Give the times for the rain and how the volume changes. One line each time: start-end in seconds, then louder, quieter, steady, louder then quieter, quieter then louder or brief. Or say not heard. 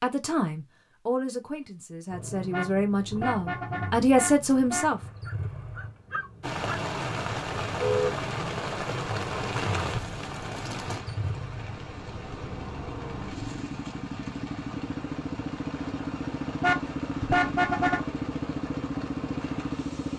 6.4-20.1 quieter.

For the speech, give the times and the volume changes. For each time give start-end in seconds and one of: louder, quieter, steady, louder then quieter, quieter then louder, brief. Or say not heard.
0.0-5.0 quieter then louder.